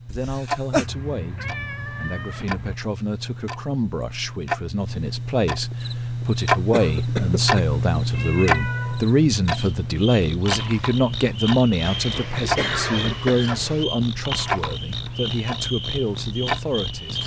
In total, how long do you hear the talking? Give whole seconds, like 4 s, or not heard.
17 s.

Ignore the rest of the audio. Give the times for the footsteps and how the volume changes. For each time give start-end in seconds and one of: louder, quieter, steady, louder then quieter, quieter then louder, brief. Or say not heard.
not heard.